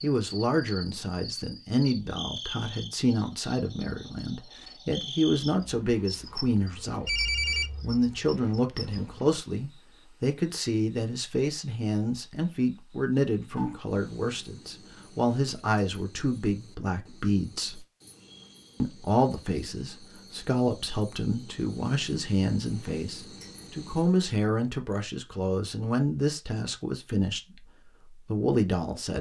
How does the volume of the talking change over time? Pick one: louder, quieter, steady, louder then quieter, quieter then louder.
steady.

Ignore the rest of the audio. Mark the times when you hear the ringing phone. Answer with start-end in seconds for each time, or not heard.
7.0-7.9.